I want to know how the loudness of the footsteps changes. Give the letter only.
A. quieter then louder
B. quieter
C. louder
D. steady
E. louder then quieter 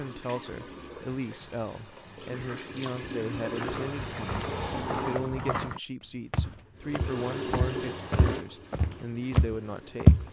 C.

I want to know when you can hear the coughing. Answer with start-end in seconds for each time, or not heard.
not heard.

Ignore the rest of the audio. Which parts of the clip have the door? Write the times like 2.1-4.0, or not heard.
4.3-5.7.